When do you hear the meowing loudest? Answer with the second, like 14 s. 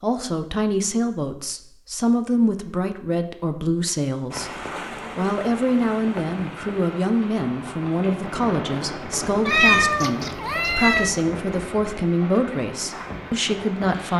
10 s.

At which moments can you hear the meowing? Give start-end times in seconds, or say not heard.
9.4-11.1.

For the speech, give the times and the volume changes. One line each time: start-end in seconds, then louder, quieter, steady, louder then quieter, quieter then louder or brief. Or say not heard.
0.0-14.1 steady.